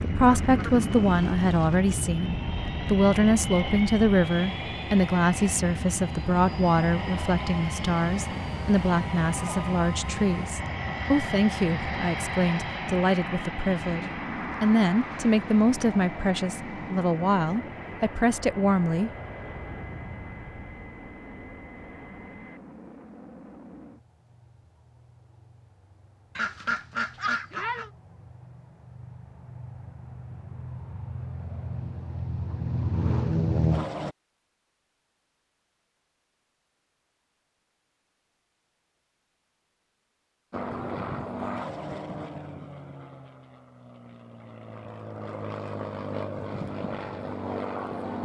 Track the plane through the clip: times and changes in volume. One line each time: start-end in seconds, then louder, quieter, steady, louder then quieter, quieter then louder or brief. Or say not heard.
0.0-34.1 quieter then louder
40.5-48.2 quieter then louder.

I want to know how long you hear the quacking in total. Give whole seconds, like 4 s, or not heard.
3 s.